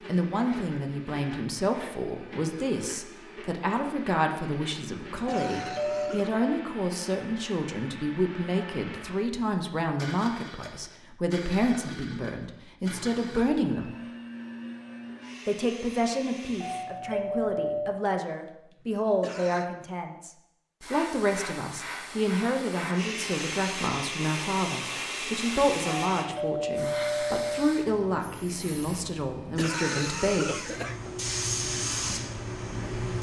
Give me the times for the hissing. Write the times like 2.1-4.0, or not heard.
20.8-33.1.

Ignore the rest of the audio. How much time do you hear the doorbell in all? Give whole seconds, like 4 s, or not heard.
4 s.